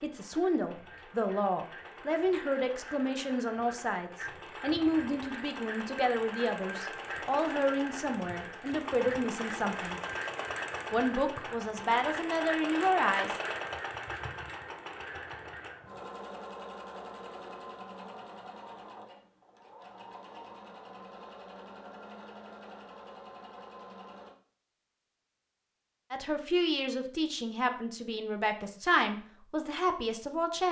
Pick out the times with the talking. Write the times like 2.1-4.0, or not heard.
0.0-10.0, 10.9-13.3, 26.1-30.6.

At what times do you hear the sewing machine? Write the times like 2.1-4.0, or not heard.
0.0-24.4.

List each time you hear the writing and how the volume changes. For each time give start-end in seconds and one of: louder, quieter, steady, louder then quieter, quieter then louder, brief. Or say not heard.
not heard.